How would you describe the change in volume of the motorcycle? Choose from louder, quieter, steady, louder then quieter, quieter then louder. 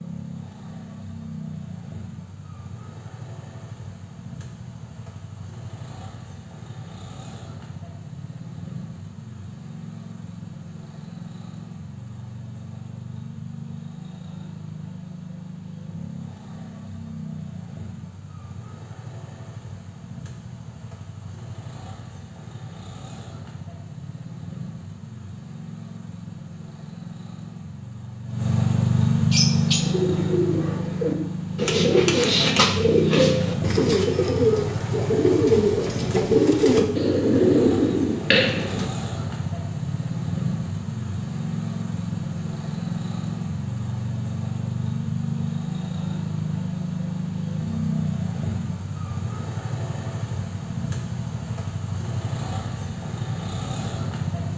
louder.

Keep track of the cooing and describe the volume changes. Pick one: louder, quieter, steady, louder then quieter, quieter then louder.
louder.